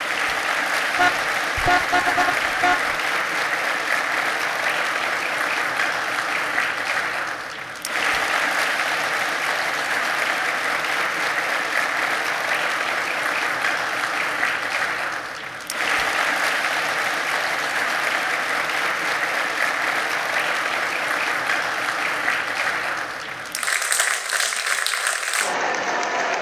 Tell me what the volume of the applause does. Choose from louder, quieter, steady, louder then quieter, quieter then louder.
steady.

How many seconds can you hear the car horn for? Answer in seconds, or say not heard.
2 s.